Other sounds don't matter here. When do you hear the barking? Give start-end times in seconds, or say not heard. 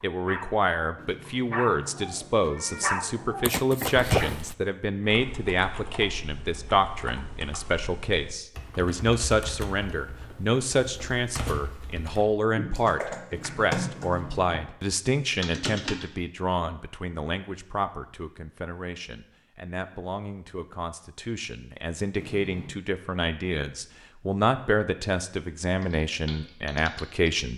0.0-4.5.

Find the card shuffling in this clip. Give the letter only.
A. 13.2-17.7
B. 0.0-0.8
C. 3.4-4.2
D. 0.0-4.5
C.